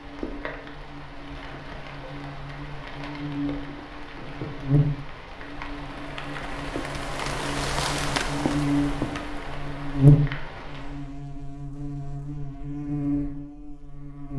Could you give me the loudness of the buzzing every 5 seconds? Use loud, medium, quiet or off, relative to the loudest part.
medium, medium, loud.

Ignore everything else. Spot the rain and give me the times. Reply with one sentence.
You can hear the rain from 0.0 to 11.2 s.